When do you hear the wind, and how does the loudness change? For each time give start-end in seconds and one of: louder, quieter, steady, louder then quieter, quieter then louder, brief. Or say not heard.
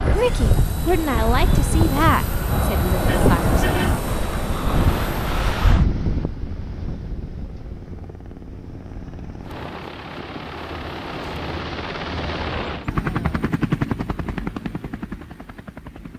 0.0-11.7 quieter.